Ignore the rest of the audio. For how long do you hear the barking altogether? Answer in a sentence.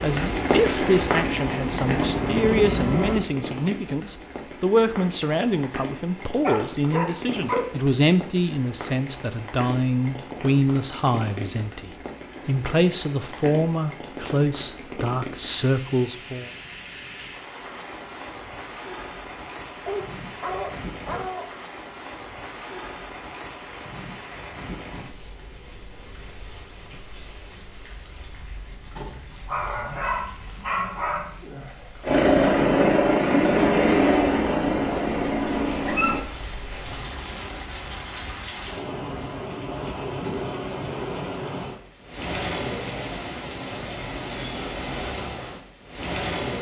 You can hear the barking for 6 seconds altogether.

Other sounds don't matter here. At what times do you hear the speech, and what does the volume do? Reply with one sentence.
You can hear the speech from 0.0 to 16.5 s, at a steady volume.